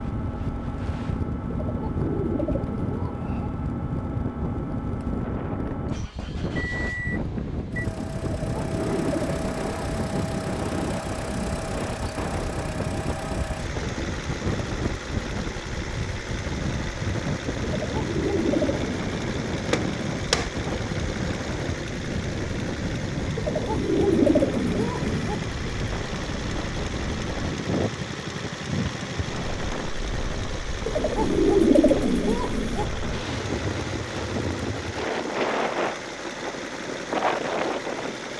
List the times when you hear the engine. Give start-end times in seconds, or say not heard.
0.0-38.3.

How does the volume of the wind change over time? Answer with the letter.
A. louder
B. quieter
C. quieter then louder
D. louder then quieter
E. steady
E.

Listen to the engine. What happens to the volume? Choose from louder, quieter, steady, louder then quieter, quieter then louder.
steady.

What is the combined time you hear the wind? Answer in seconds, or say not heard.
38 s.